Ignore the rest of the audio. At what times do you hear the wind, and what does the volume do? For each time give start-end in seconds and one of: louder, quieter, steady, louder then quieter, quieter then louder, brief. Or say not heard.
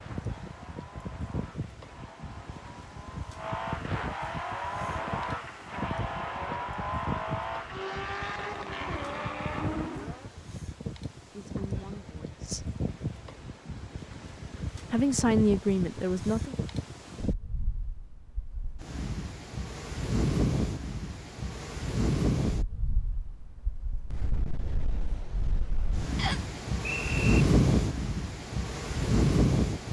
0.0-29.8 louder.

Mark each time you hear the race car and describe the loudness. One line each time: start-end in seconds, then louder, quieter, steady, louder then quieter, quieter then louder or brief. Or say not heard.
0.0-10.3 louder.